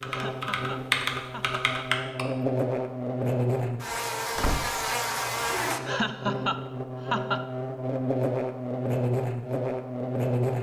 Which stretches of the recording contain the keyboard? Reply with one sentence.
You can hear the keyboard from 0.0 to 2.2 s.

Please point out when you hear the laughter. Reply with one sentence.
You can hear the laughter from 0.1 to 1.6 s and from 5.8 to 7.5 s.